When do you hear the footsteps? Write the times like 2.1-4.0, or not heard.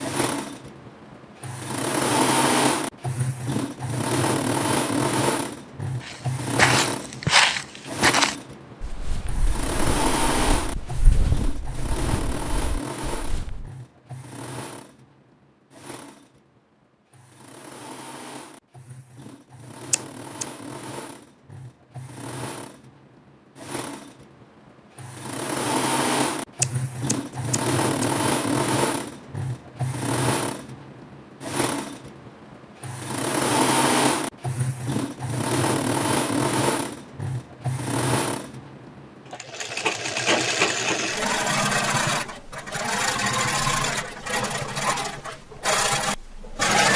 6.0-13.7.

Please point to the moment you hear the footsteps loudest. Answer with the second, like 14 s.
7 s.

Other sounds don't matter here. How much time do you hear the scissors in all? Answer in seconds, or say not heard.
2 s.